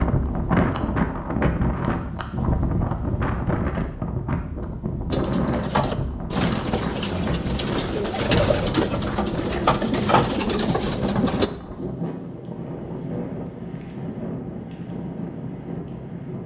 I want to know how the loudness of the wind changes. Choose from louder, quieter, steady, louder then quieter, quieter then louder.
quieter.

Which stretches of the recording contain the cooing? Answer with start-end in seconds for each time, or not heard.
5.1-11.5.